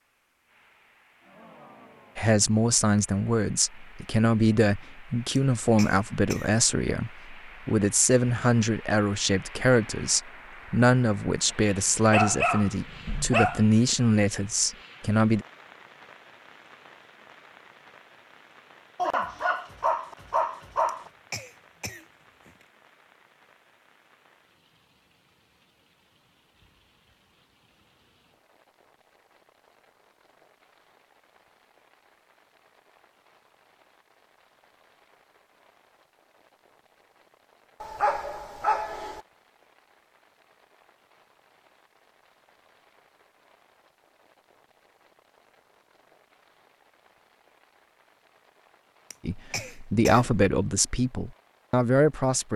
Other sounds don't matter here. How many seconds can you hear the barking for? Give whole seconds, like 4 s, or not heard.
5 s.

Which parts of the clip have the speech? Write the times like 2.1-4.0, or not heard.
2.1-15.4, 49.2-52.5.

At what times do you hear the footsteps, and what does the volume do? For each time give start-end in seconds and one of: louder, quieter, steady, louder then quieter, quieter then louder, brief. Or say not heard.
not heard.